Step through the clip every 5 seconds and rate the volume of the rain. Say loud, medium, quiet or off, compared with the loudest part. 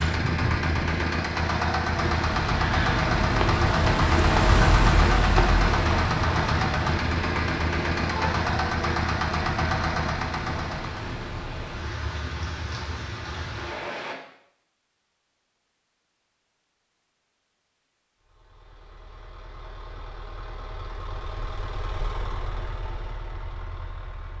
loud, loud, medium, off, off.